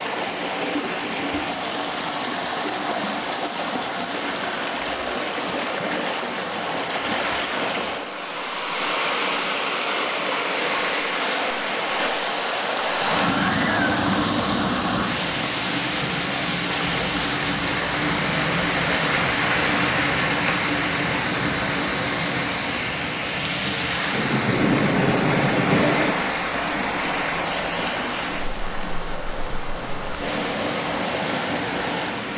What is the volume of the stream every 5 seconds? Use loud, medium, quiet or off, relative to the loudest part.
medium, medium, loud, loud, loud, medium, medium.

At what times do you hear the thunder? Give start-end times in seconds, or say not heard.
24.1-26.1.